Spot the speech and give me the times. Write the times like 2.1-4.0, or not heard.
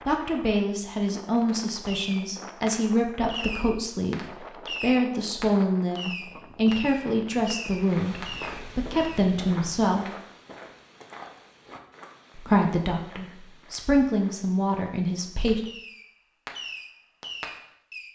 0.1-10.1, 12.3-15.6.